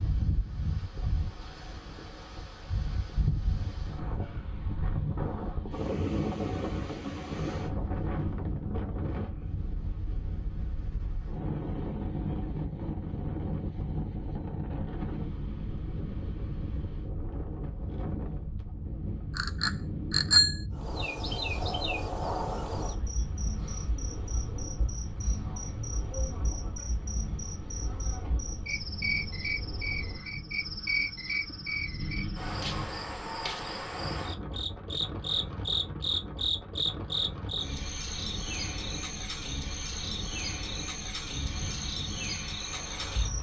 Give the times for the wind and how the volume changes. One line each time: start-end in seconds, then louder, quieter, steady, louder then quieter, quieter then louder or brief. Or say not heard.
0.0-43.3 quieter.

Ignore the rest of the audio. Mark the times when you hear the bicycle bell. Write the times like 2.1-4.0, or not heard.
19.4-20.6.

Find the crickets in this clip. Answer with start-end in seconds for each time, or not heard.
20.7-43.3.